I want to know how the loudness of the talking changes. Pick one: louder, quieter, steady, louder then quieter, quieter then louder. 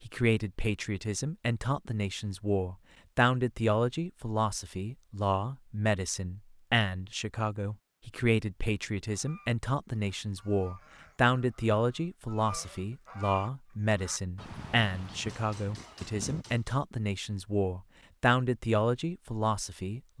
steady.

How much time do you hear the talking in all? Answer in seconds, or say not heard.
20 s.